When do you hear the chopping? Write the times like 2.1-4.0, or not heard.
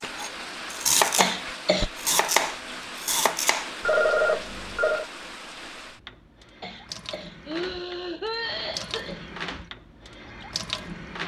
0.0-3.7.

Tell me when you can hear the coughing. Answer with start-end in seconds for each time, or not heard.
1.1-1.9, 6.6-9.3.